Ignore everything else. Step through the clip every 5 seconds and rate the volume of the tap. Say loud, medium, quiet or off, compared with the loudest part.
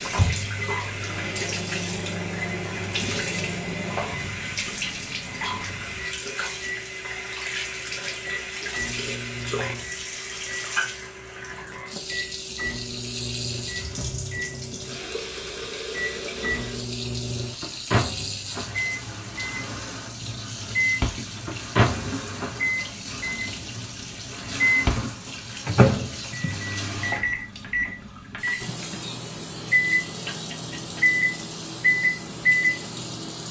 loud, loud, loud, loud, loud, medium, medium.